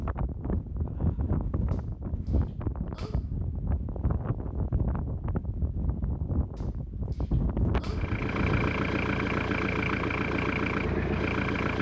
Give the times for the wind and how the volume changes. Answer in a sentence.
You can hear the wind from 0.0 to 8.8 s, at a steady volume.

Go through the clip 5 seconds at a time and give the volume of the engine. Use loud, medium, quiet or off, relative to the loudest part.
off, loud, loud.